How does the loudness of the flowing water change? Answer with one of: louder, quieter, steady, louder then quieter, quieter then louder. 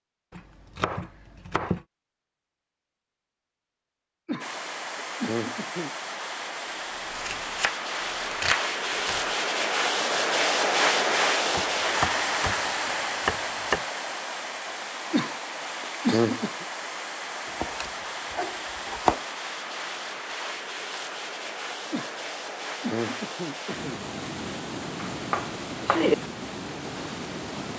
louder then quieter.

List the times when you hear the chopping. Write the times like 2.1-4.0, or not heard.
0.3-1.9, 6.7-9.3, 11.5-12.6, 13.2-13.8, 17.6-19.2, 25.0-26.1.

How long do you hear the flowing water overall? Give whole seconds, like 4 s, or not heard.
23 s.